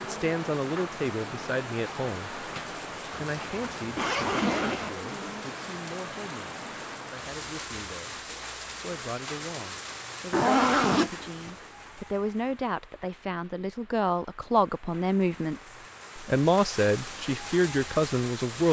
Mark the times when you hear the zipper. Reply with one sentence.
You can hear the zipper from 3.2 to 4.9 s and from 10.3 to 11.6 s.